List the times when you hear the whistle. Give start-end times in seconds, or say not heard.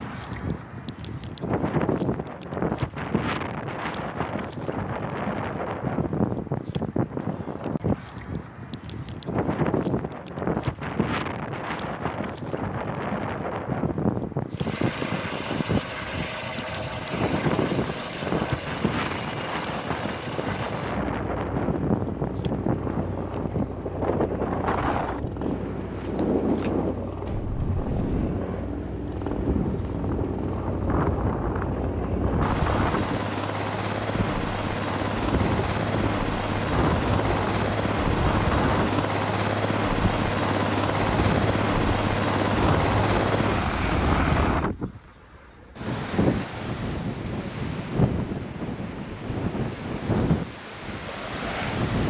not heard.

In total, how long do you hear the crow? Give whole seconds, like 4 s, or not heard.
not heard.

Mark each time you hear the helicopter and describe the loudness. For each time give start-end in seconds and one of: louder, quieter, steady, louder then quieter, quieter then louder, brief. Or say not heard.
14.5-44.7 louder.